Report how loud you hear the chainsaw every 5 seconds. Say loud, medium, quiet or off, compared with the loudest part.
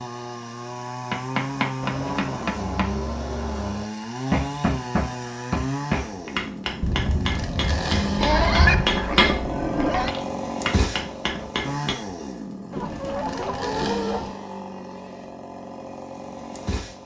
loud, loud, loud, medium.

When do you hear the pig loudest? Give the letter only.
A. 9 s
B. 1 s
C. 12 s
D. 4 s
A.